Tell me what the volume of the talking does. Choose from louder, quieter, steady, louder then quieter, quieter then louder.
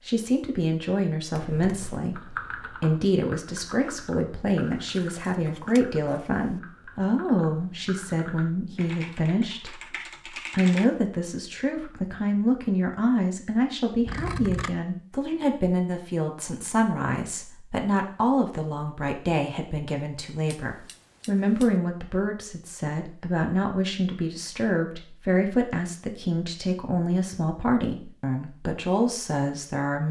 steady.